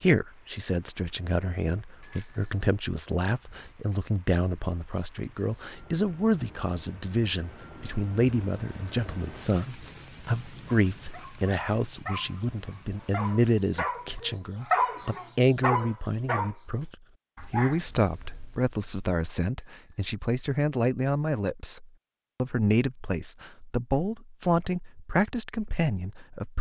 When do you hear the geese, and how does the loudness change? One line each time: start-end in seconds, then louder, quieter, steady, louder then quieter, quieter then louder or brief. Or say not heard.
not heard.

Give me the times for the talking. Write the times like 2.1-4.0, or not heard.
0.0-26.5.